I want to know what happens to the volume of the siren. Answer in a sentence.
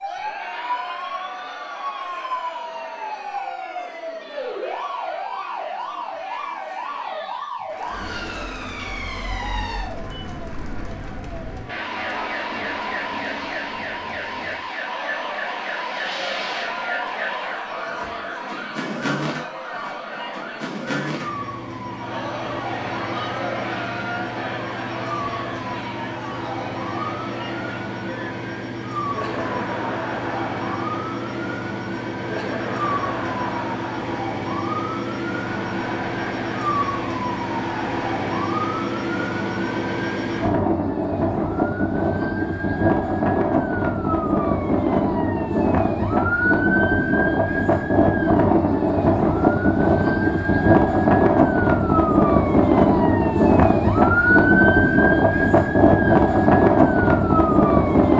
The loudness of the siren goes up.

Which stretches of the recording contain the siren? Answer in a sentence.
The siren can be heard from 0.0 to 58.1 s.